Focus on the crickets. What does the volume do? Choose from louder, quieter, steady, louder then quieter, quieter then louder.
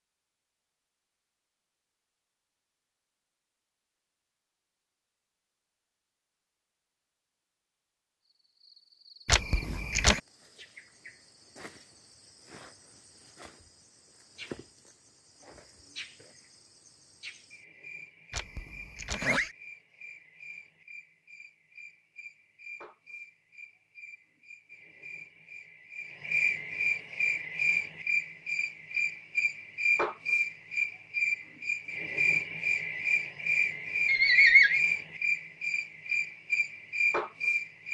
louder.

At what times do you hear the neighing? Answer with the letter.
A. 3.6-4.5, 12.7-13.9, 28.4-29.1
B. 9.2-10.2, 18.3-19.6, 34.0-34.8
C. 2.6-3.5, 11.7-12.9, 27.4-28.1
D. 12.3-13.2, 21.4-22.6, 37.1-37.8
B.